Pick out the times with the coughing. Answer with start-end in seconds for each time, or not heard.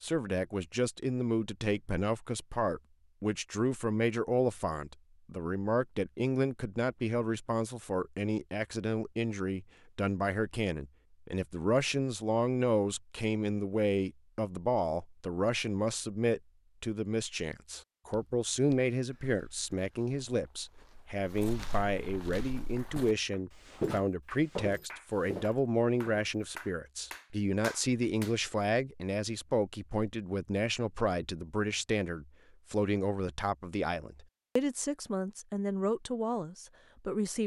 not heard.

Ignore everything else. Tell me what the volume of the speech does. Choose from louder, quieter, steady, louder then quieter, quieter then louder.
steady.